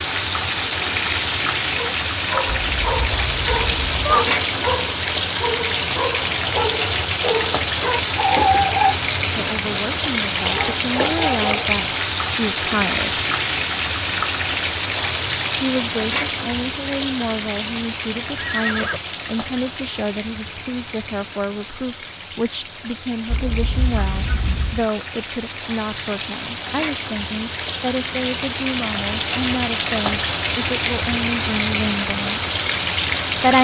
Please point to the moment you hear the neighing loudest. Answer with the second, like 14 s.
4 s.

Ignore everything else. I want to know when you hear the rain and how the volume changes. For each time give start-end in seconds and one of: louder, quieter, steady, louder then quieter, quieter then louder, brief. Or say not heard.
0.0-33.5 quieter then louder.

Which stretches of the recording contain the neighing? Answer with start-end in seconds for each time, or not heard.
2.5-4.2, 18.4-19.0, 23.3-24.9.